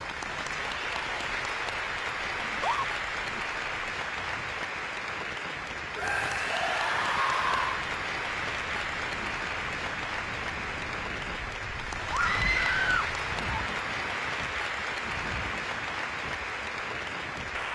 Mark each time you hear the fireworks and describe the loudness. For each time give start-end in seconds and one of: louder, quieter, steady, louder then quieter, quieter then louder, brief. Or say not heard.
not heard.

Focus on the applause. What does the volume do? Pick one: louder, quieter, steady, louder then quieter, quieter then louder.
steady.